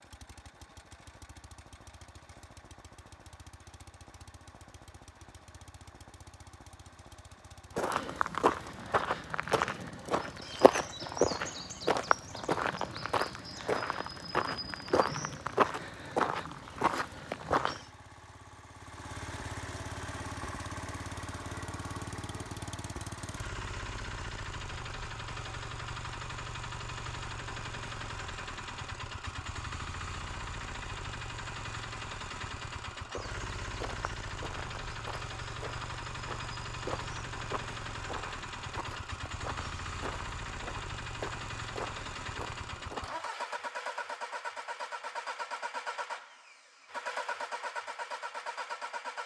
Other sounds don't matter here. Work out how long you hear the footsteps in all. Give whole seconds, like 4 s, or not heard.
20 s.